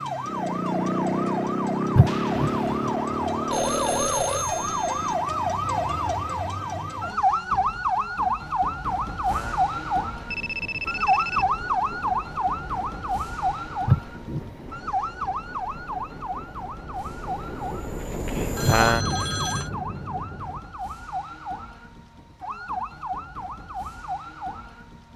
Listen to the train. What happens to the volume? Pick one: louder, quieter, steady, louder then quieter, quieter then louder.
louder.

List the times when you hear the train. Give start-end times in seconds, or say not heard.
9.2-20.6.